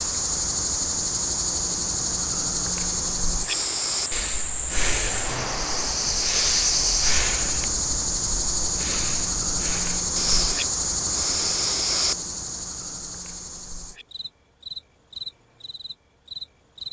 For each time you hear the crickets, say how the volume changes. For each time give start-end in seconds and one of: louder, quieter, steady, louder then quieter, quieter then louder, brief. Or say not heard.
0.0-16.8 quieter.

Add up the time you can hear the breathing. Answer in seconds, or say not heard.
9 s.